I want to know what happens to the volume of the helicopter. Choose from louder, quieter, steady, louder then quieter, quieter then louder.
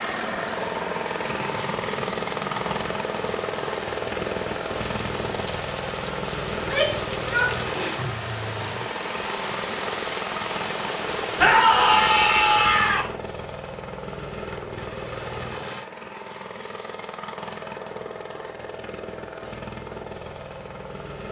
quieter.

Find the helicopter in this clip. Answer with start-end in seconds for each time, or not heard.
0.0-21.2.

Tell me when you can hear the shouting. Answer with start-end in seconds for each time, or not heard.
6.5-8.0, 11.3-13.1.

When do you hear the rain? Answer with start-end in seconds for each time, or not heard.
0.0-12.2.